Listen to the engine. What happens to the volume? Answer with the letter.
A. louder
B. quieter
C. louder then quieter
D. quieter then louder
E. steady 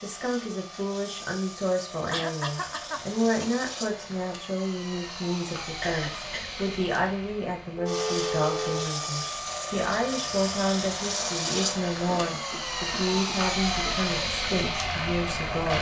A.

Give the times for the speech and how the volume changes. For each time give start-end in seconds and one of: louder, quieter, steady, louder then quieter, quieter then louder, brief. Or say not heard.
0.0-15.7 steady.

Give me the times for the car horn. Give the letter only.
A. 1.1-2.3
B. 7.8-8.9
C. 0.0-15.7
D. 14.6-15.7
B.